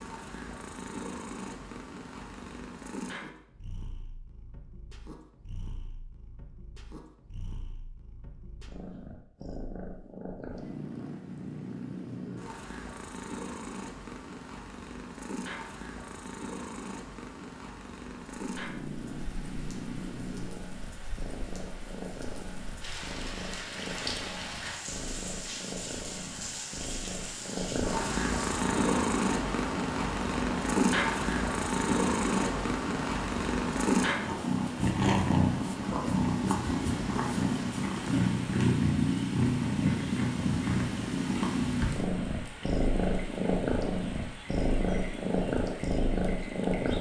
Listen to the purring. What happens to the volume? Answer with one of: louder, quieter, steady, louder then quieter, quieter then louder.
louder.